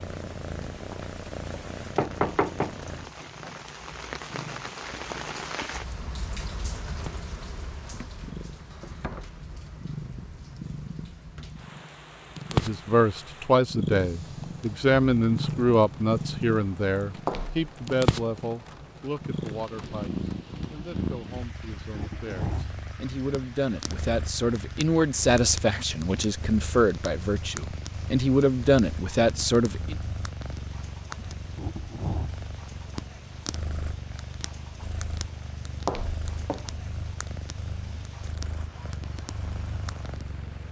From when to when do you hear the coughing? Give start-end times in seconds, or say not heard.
not heard.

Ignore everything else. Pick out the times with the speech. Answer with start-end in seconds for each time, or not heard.
12.5-29.9.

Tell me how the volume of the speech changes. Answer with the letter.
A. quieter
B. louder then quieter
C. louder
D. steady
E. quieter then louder
E.